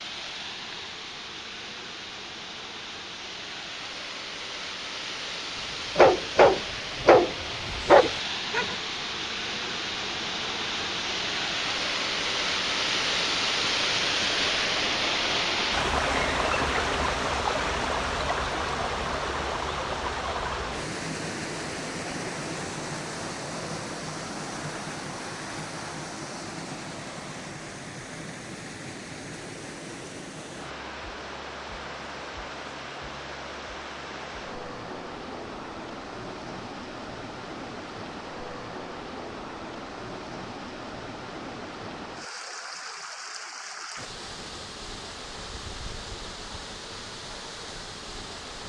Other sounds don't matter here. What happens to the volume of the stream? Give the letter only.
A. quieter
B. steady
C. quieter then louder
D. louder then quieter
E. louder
D.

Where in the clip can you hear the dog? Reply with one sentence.
You can hear the dog from 6.0 to 8.8 s.